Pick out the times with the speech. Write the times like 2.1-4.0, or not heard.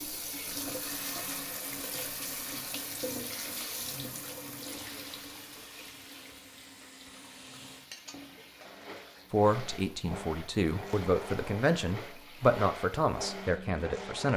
9.3-14.3.